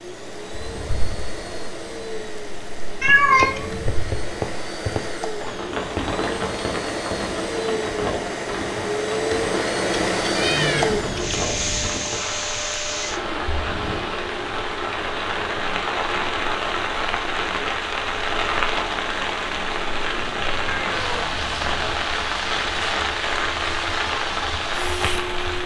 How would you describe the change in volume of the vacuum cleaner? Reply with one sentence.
The volume of the vacuum cleaner goes up, then down.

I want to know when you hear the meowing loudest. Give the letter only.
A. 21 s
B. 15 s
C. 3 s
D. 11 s
C.